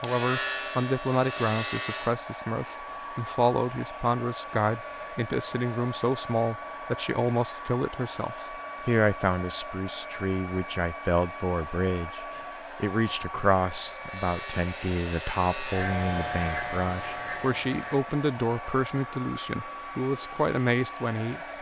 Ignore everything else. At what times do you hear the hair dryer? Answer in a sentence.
You can hear the hair dryer from 0.0 to 21.5 s.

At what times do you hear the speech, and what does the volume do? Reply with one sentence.
The speech can be heard from 0.0 to 21.5 s, at a steady volume.